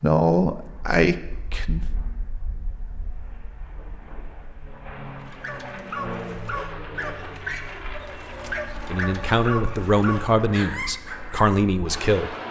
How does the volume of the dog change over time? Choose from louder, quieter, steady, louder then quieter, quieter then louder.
steady.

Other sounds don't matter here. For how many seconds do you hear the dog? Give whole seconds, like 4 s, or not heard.
6 s.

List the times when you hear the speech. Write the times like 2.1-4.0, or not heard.
0.0-1.8, 8.8-12.3.